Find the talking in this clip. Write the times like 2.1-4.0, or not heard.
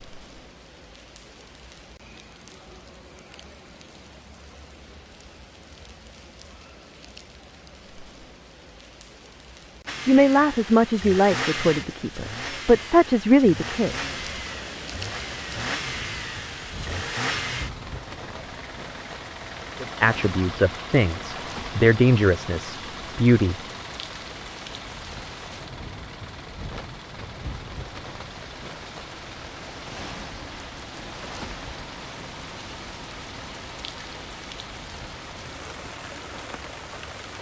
10.1-14.1, 19.8-23.6.